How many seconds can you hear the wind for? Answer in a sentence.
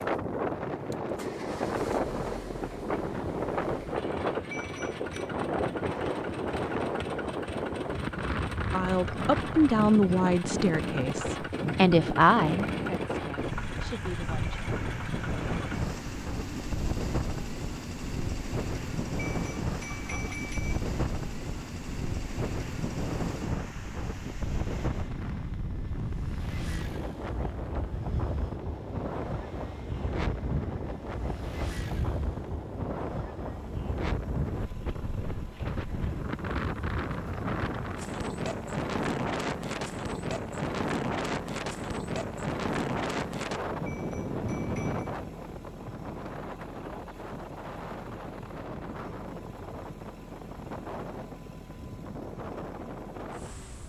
You can hear the wind for 54 seconds altogether.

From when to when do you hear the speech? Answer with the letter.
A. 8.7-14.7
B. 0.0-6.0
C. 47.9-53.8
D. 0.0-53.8
A.